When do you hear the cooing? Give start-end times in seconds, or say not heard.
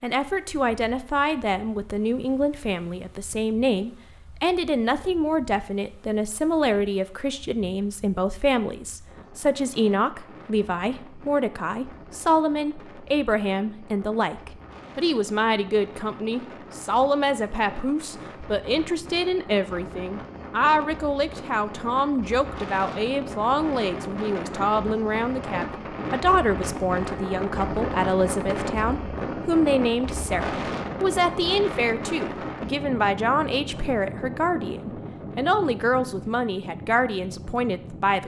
not heard.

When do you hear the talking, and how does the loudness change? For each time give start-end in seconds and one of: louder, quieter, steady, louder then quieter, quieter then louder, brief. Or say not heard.
0.0-38.2 steady.